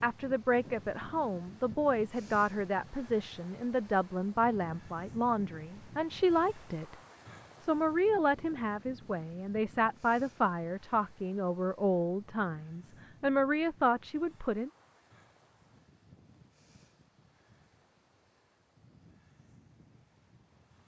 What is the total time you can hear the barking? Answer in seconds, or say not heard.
not heard.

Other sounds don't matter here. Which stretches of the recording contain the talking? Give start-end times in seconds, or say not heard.
0.0-7.0, 7.6-14.7.